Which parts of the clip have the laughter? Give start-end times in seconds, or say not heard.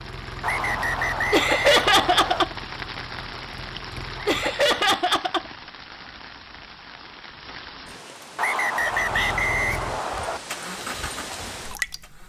1.3-2.5, 4.2-5.5, 8.4-9.5.